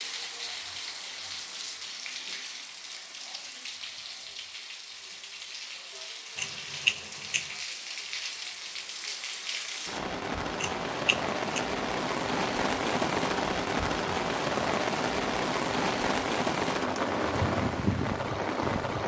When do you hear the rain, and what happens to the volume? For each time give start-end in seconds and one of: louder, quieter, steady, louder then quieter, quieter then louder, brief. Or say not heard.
0.0-19.0 louder.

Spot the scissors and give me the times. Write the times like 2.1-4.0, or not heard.
6.3-7.5, 10.6-11.6.